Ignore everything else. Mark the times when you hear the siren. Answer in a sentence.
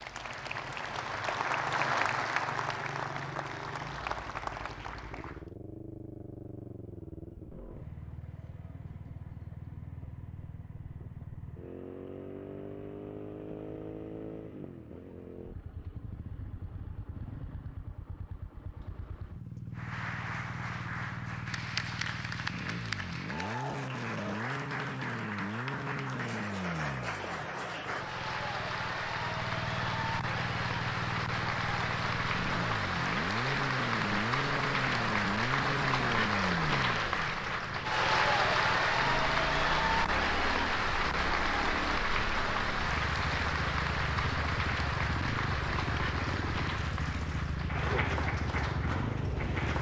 You can't hear the siren here.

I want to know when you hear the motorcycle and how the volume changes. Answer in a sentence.
The motorcycle can be heard from 0.0 to 49.7 s, getting louder.